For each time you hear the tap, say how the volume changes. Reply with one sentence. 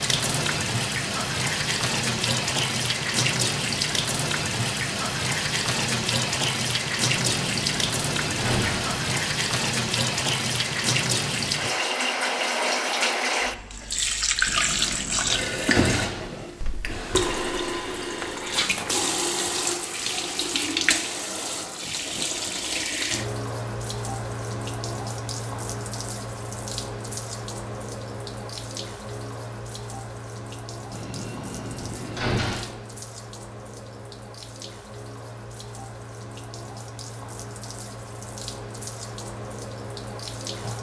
The tap can be heard from 0.0 to 40.7 s, getting quieter.